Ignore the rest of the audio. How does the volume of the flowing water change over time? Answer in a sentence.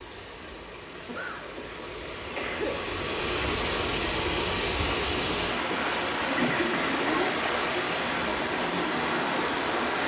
The volume of the flowing water goes up.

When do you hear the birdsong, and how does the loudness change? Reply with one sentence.
The birdsong can't be heard in this clip.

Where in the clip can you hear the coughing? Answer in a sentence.
You can hear the coughing from 0.9 to 2.8 s and from 6.2 to 7.5 s.